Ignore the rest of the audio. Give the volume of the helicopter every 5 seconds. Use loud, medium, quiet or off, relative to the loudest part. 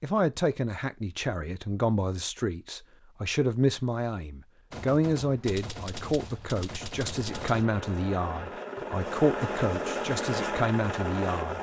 off, loud, loud.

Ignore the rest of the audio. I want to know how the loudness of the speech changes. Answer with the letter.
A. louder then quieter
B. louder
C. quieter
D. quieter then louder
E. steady
E.